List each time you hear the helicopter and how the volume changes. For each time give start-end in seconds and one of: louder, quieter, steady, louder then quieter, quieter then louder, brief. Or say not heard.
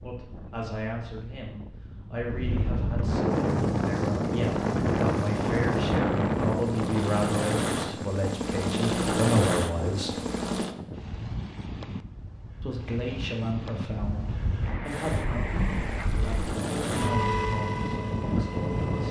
3.2-10.8 louder
14.8-19.0 louder then quieter.